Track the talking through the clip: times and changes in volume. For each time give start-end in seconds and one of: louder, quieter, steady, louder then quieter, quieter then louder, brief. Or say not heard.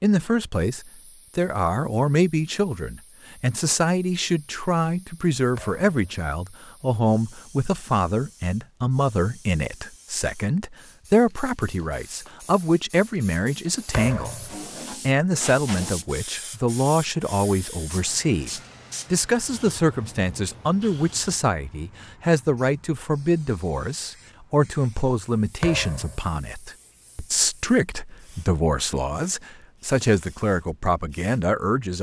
0.0-14.3 steady
15.1-31.9 steady.